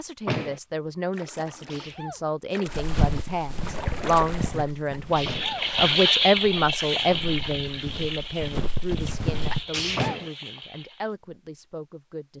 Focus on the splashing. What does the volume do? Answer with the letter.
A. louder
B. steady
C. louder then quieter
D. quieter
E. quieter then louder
C.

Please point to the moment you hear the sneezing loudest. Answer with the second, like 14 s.
10 s.